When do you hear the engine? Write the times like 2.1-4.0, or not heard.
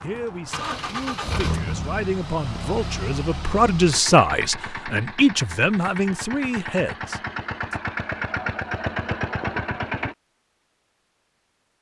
0.0-10.2.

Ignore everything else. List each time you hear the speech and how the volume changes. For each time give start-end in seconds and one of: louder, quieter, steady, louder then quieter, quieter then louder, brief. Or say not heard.
0.0-7.8 louder then quieter.